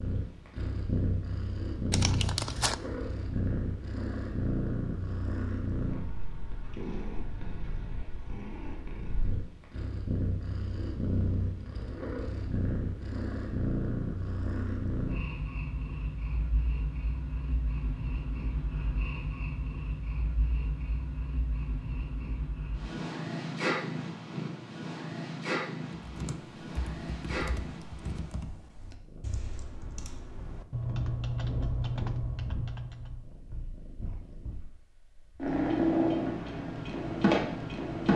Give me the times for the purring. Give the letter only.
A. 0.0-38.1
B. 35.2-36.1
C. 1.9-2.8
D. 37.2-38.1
A.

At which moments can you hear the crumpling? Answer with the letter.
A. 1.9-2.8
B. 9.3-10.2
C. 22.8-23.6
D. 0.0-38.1
A.